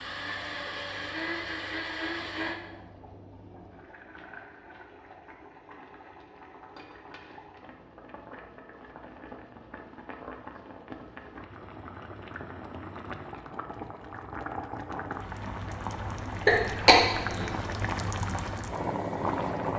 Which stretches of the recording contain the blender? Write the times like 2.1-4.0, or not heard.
0.0-2.6.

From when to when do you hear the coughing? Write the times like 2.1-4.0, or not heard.
16.4-17.5.